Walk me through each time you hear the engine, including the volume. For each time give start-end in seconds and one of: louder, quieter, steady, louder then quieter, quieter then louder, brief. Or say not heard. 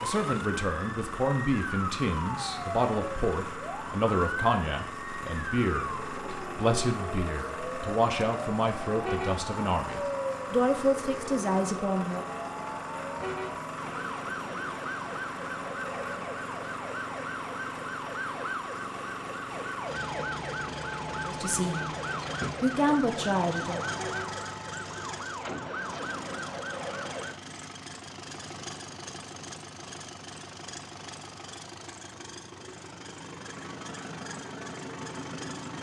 0.0-35.7 steady.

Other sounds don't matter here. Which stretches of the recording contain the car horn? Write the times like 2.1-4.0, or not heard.
9.0-9.4, 13.2-13.6, 23.9-24.4.